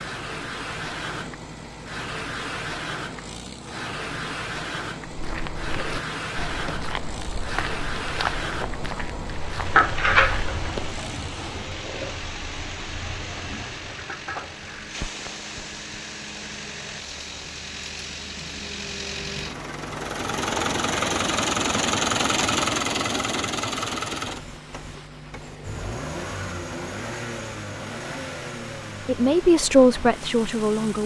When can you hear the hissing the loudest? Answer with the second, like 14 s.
10 s.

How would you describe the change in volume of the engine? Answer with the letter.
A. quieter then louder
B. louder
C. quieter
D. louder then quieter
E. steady
D.